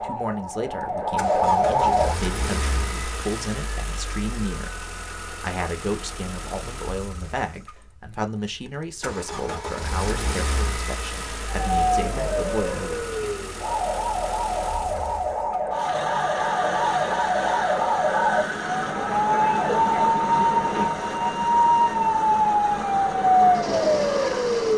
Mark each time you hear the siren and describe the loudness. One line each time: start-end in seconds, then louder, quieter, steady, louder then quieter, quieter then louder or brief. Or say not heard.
0.0-2.1 brief
11.4-24.7 louder.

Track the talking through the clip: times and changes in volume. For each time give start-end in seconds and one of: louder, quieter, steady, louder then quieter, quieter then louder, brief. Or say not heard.
0.0-13.3 steady.